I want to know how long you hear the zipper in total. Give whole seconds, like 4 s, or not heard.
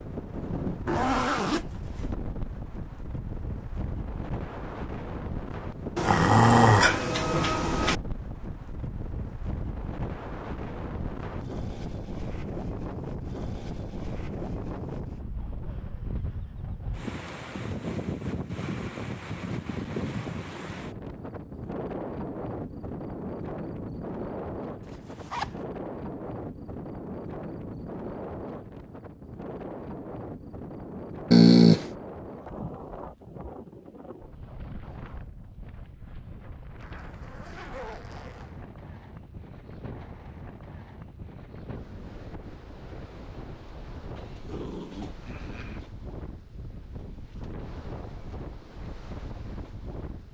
4 s.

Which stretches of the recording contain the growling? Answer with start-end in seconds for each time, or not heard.
6.0-8.0, 31.3-31.9, 44.1-45.9.